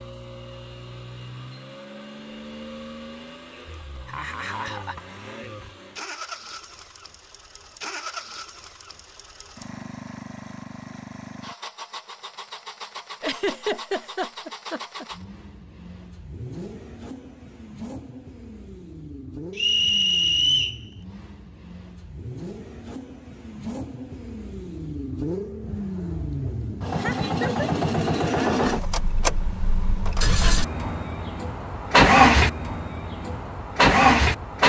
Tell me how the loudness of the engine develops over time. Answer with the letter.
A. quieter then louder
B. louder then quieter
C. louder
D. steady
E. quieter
C.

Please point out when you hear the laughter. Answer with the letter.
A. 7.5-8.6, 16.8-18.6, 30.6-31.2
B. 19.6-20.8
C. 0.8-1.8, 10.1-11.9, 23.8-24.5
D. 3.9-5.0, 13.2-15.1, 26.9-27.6
D.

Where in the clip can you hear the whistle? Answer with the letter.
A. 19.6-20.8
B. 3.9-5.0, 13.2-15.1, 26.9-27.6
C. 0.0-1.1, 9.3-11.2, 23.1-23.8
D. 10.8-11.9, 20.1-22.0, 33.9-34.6
A.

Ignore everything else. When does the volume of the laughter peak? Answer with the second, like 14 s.
14 s.